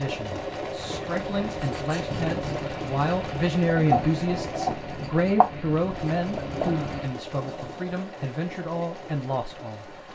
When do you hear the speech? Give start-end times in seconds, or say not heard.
0.0-9.9.